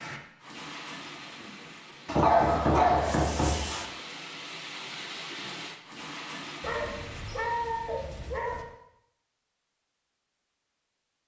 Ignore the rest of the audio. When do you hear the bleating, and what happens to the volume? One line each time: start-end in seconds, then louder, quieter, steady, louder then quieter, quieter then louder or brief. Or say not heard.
not heard.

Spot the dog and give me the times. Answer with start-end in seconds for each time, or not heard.
2.0-3.9, 6.6-8.7.